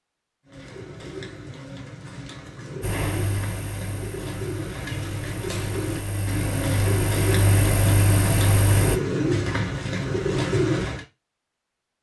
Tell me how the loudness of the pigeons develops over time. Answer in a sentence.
The loudness of the pigeons goes up.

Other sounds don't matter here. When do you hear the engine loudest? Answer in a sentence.
The loudest moment of the engine is at 8 seconds.